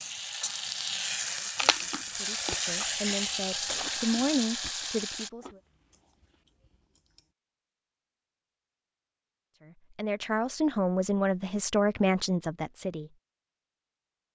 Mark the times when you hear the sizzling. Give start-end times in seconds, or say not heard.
0.0-5.3.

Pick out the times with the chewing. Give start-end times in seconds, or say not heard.
1.6-7.2.